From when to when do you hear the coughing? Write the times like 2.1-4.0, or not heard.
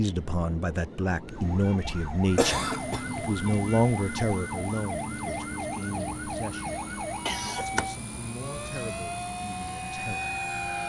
1.2-3.0, 7.2-7.9.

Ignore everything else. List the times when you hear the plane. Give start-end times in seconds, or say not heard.
2.4-10.8.